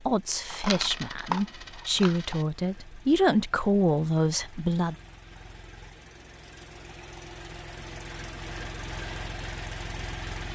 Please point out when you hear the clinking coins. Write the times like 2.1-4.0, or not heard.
0.5-2.5.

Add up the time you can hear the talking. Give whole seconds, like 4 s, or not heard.
5 s.